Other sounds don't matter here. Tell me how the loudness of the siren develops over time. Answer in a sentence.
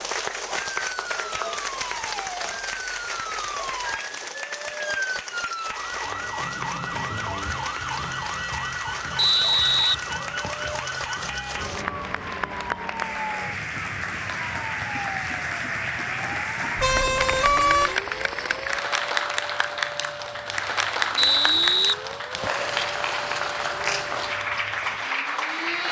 The loudness of the siren goes down.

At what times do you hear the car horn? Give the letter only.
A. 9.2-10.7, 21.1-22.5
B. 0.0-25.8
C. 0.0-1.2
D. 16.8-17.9
D.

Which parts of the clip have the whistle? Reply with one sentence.
The whistle can be heard from 9.2 to 10.7 s and from 21.1 to 22.5 s.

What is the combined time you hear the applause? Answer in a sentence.
The applause can be heard for 26 seconds in total.